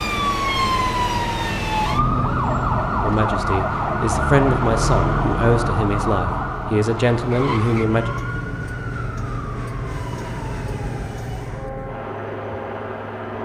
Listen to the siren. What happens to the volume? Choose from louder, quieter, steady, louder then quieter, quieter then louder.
quieter.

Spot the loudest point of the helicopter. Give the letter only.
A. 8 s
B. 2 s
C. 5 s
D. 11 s
C.